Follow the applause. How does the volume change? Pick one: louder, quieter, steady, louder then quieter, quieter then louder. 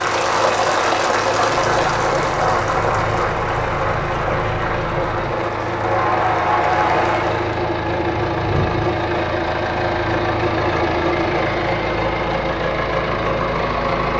quieter then louder.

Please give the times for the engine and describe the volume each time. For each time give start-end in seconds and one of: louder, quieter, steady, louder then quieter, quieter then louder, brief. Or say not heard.
0.0-14.1 louder.